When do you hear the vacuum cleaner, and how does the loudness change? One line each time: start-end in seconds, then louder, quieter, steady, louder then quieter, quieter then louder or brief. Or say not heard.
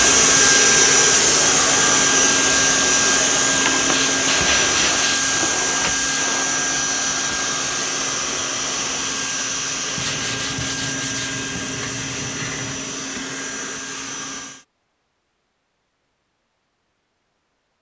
0.0-14.7 quieter.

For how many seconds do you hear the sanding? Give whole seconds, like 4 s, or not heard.
5 s.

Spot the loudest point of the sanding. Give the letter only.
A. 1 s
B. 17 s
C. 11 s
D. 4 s
D.